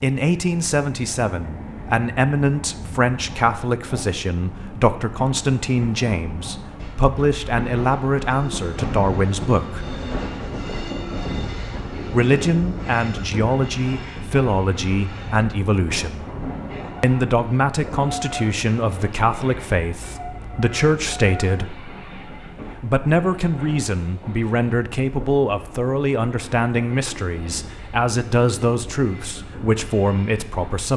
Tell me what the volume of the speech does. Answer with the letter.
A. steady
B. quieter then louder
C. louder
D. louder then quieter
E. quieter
A.